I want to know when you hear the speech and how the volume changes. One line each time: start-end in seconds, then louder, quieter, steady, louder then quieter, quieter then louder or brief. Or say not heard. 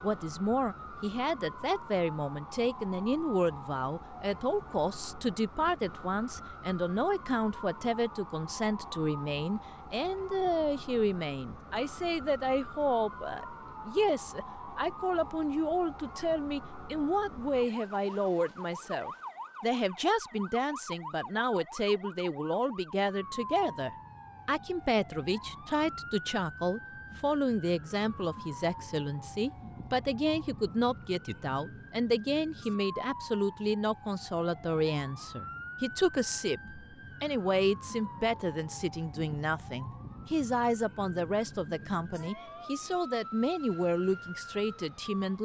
0.0-45.4 steady.